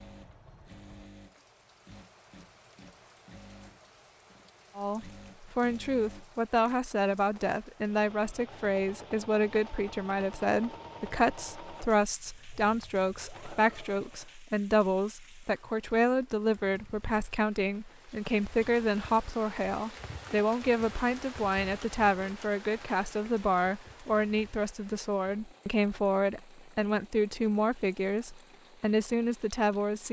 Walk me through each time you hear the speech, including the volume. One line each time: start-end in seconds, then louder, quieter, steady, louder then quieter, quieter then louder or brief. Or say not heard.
4.8-30.0 steady.